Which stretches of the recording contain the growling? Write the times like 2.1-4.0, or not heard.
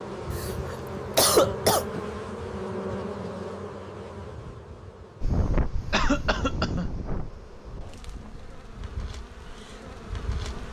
not heard.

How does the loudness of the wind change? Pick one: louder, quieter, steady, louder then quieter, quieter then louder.
quieter.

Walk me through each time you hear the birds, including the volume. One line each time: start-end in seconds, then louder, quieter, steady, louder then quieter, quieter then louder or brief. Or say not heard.
not heard.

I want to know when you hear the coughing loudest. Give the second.
1 s.